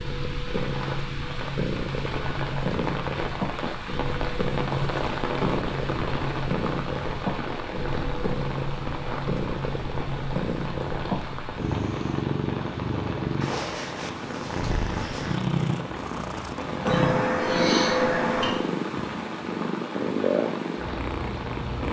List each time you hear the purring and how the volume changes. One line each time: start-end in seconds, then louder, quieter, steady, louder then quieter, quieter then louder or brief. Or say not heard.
0.0-21.8 steady.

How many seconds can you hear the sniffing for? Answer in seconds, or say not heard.
2 s.